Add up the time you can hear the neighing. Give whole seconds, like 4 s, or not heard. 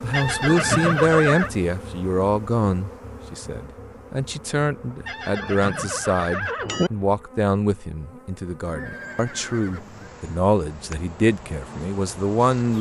5 s.